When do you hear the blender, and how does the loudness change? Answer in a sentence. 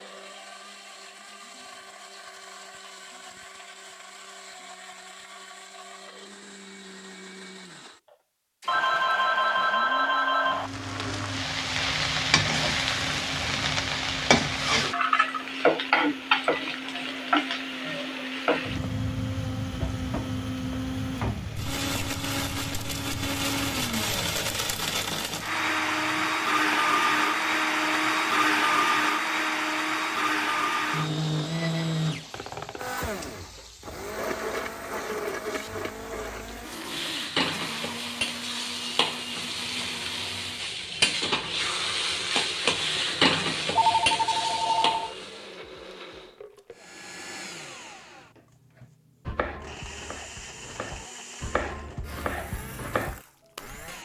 You can hear the blender from 0.0 to 54.0 s, getting louder then quieter.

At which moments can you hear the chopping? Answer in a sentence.
The chopping can be heard from 47.9 to 53.2 s.